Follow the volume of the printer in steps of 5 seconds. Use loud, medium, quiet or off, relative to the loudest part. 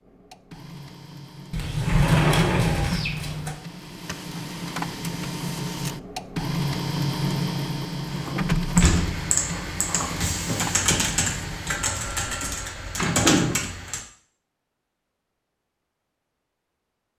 medium, loud, medium, off.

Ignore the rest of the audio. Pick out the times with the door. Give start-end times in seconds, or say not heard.
1.5-3.5, 8.7-9.3, 12.9-13.7.